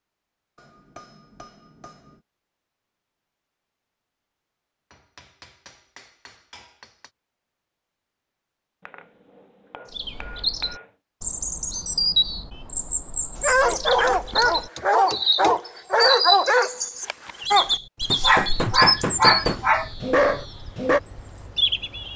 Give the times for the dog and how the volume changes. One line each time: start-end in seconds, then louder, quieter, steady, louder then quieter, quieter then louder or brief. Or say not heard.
13.4-21.0 steady.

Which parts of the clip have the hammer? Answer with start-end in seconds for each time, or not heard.
0.6-2.2, 4.9-7.1, 8.8-10.9, 13.7-15.6, 18.1-19.6.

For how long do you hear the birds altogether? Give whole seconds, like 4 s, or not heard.
12 s.